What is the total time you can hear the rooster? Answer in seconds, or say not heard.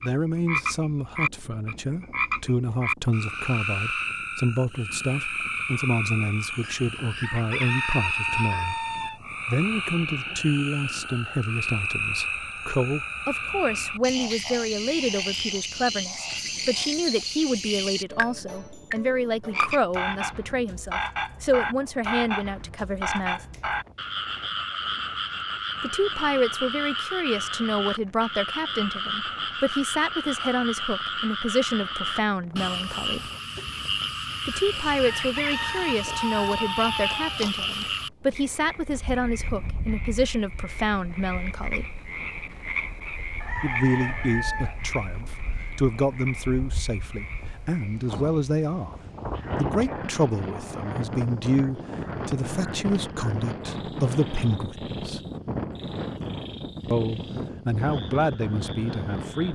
7 s.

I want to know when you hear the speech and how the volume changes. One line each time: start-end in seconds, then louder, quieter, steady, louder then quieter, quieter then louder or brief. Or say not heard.
0.0-8.8 steady
9.4-23.4 steady
25.8-33.3 steady
34.5-41.9 steady
43.6-55.2 steady
56.9-59.5 brief.